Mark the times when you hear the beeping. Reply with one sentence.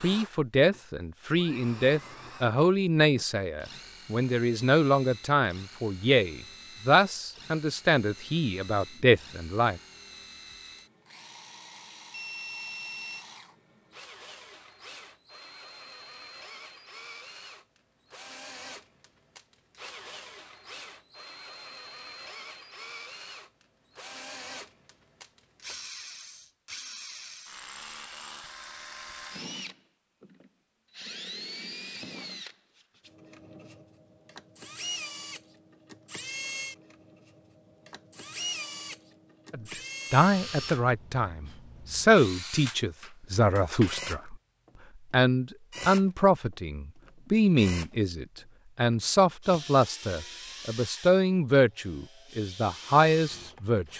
You can hear the beeping from 12.1 to 13.2 s.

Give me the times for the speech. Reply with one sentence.
The speech can be heard from 0.0 to 9.8 s, from 39.5 to 44.4 s and from 45.1 to 53.9 s.